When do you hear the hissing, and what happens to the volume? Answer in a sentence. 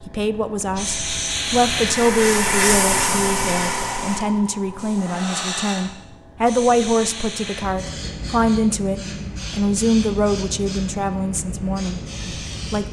The hissing can be heard from 0.0 to 12.8 s, getting quieter.